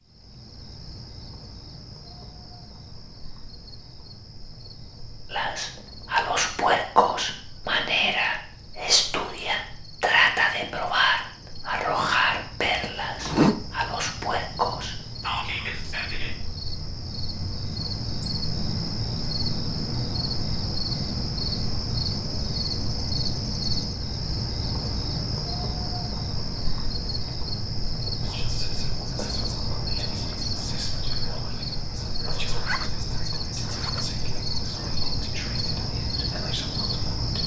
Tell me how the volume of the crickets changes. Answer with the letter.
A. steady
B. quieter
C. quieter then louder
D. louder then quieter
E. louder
E.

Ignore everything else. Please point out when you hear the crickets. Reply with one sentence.
The crickets can be heard from 0.0 to 37.4 s.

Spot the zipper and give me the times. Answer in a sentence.
You can hear the zipper from 12.7 to 13.6 s and from 32.5 to 34.1 s.